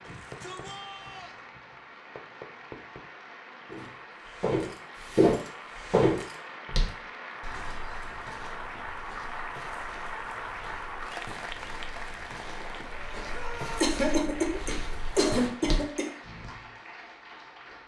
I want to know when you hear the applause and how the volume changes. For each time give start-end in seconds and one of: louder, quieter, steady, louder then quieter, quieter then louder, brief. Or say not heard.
0.0-17.8 louder then quieter.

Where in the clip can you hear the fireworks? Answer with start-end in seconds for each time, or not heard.
0.1-3.1.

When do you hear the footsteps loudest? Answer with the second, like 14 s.
5 s.